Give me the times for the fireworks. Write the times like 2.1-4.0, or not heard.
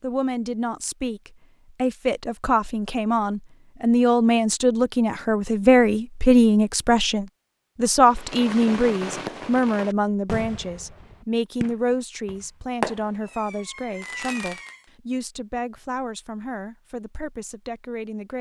8.1-14.8.